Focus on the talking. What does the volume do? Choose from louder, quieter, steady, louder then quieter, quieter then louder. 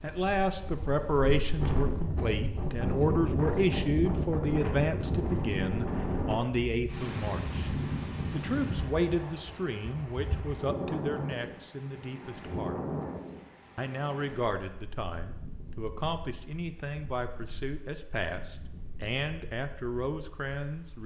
quieter.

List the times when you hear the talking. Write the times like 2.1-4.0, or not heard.
0.0-7.7, 8.3-12.8, 13.8-21.0.